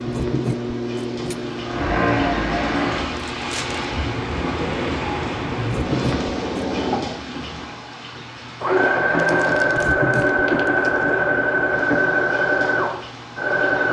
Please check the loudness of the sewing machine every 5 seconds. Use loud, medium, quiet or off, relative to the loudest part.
medium, loud, loud.